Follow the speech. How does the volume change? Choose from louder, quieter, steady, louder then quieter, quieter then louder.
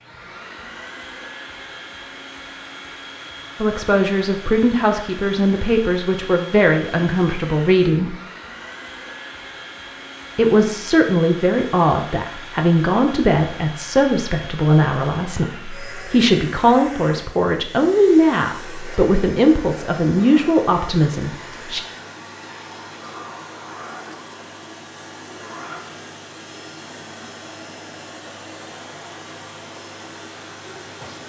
steady.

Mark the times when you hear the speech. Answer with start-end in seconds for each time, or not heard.
3.6-8.2, 10.3-21.8.